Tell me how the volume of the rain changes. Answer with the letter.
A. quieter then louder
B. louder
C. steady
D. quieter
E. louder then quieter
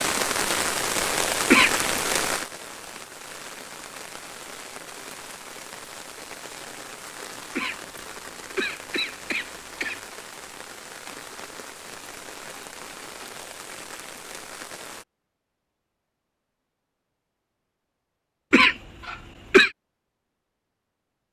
D.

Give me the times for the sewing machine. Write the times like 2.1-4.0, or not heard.
not heard.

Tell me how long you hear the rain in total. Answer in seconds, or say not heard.
15 s.